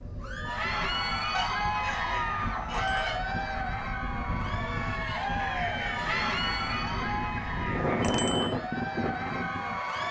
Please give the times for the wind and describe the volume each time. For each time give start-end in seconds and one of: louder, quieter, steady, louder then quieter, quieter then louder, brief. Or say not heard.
0.0-10.0 louder.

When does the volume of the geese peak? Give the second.
3 s.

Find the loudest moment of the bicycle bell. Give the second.
8 s.